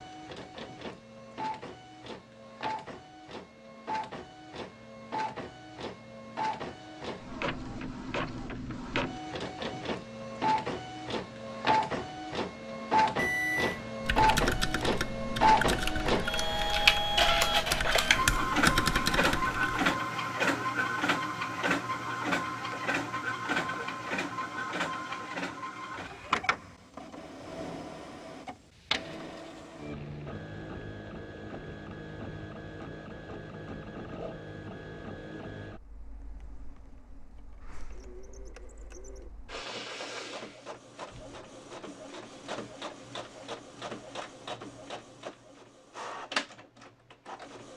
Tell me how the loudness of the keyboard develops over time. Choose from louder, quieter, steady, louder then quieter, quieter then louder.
quieter then louder.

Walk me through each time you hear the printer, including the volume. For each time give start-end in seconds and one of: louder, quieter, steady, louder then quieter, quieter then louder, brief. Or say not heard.
0.0-47.7 louder then quieter.